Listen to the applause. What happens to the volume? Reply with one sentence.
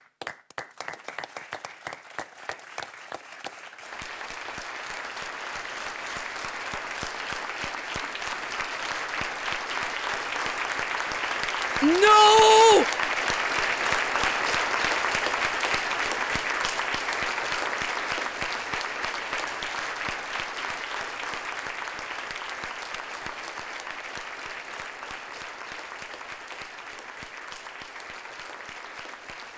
The volume of the applause goes up, then down.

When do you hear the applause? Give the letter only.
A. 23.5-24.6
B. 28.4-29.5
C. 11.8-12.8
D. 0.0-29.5
D.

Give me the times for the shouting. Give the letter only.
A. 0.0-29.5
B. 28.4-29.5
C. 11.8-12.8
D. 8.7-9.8
C.